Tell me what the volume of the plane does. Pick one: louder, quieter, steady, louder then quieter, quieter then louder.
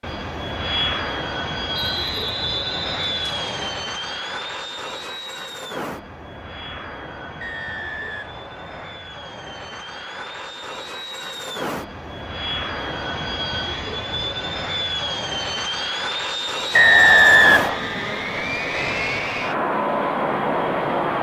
quieter then louder.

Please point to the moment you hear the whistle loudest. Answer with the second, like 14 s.
17 s.